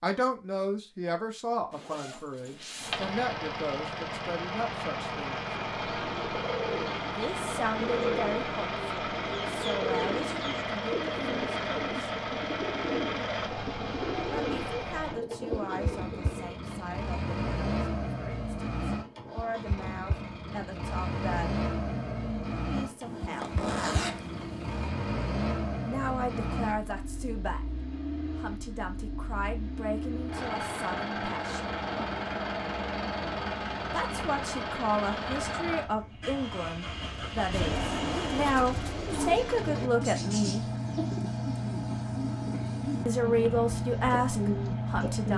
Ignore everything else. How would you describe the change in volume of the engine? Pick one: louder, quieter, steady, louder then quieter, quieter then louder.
steady.